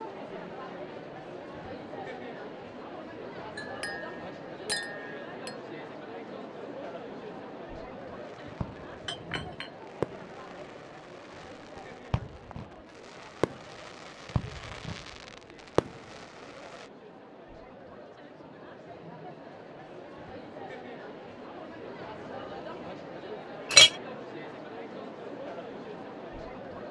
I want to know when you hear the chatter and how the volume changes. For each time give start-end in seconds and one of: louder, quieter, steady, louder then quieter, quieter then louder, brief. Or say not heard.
0.0-26.8 quieter then louder.